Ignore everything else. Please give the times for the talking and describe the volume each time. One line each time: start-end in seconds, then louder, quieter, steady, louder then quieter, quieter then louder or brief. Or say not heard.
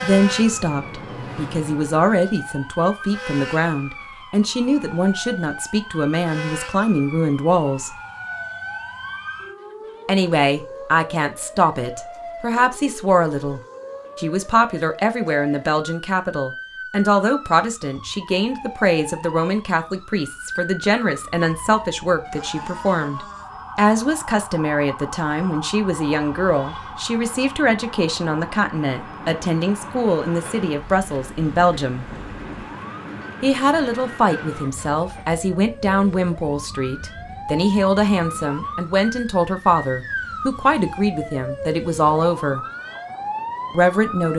0.0-7.9 steady
10.1-32.0 steady
33.4-42.6 steady
43.7-44.3 brief.